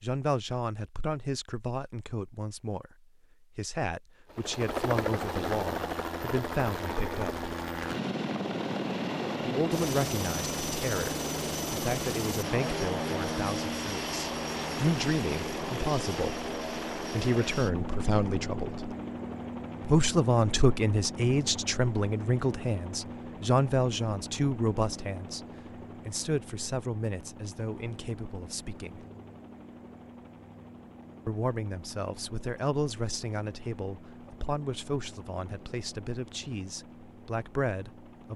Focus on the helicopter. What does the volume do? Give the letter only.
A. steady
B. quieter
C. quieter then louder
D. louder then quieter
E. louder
B.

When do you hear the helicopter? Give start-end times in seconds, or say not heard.
4.3-38.3.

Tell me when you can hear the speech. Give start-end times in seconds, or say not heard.
0.0-2.9, 3.5-7.5, 9.4-18.9, 19.8-25.4, 26.1-29.0, 31.2-38.3.